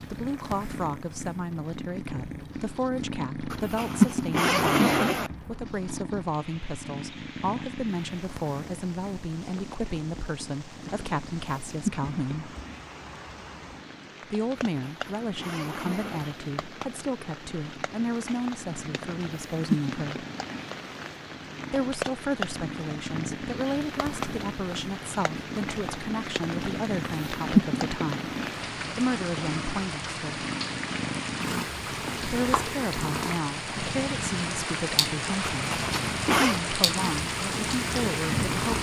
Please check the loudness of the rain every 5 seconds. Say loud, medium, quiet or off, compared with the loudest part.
quiet, quiet, quiet, medium, medium, medium, loud, loud.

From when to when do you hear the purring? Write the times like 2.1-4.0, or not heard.
0.0-38.7.